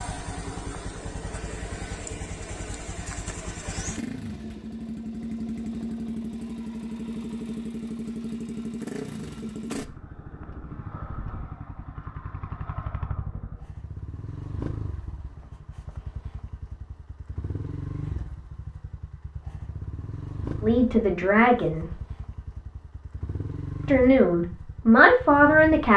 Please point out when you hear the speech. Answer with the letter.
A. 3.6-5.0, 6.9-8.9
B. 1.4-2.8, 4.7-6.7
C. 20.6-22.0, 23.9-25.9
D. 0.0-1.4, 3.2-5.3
C.